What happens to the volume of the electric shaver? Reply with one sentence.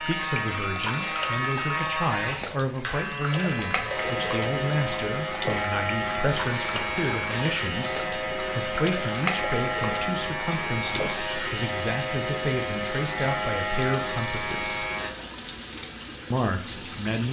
The volume of the electric shaver stays about the same.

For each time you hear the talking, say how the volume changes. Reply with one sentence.
You can hear the talking from 0.0 to 14.8 s, at a steady volume; and briefly from 16.3 to 17.2 s.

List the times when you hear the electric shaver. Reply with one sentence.
The electric shaver can be heard from 0.0 to 15.1 s.